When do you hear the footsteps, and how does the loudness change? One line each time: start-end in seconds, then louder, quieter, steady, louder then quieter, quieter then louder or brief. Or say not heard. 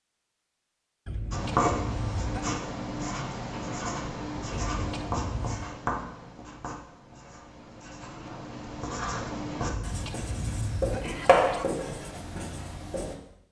not heard.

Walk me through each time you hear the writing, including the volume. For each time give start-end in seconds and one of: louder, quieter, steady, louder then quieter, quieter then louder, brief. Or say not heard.
1.3-13.2 quieter then louder.